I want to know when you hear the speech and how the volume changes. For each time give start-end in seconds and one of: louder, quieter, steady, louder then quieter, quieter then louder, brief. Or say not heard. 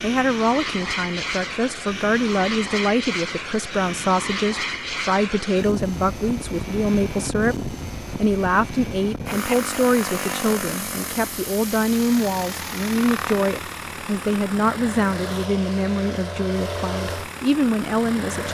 0.0-18.4 steady.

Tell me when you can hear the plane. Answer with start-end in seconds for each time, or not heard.
0.0-18.4.